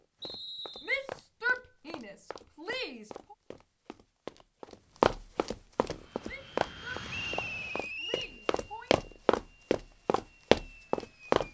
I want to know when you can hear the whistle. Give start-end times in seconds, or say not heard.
0.2-1.1, 7.1-8.3.